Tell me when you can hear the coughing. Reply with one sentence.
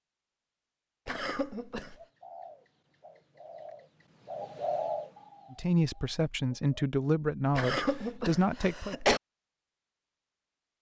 You can hear the coughing from 1.1 to 1.9 s and from 7.5 to 9.2 s.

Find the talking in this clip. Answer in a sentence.
You can hear the talking from 5.5 to 8.9 s.